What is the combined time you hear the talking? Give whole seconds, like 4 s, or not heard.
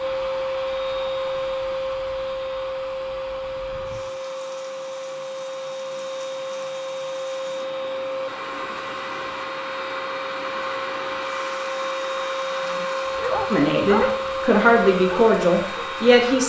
3 s.